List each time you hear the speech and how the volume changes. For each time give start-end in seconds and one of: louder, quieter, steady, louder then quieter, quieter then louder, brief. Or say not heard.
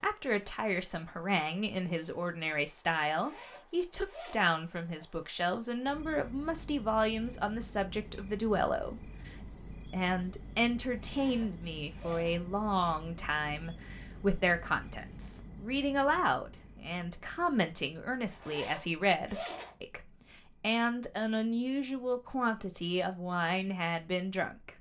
0.0-24.7 steady.